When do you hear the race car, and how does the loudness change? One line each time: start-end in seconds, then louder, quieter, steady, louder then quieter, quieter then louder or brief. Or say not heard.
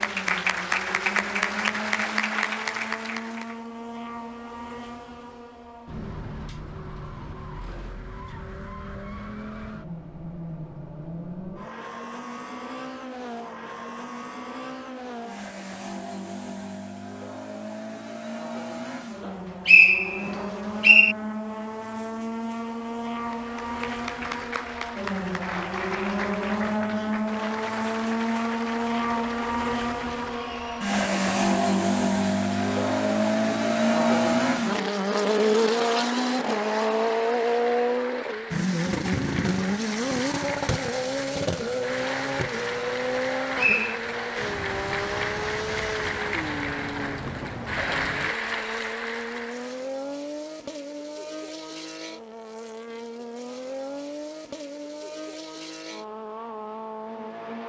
0.0-57.6 louder then quieter.